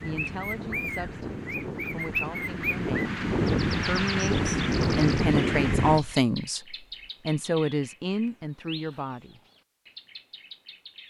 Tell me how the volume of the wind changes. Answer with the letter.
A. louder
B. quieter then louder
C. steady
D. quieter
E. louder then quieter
A.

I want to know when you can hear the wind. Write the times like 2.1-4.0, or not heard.
0.0-6.2.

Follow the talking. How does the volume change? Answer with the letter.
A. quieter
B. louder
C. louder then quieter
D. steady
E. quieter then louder
C.